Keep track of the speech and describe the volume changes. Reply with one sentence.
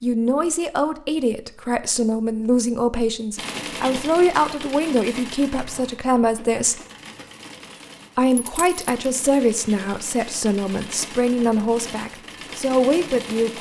The volume of the speech stays about the same.